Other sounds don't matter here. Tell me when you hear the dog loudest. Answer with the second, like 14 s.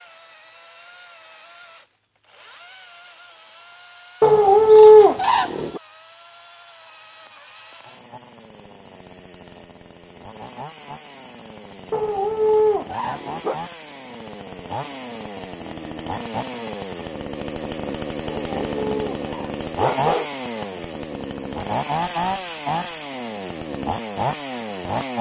5 s.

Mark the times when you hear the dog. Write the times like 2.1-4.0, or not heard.
4.2-5.8, 11.9-13.6, 18.2-20.2.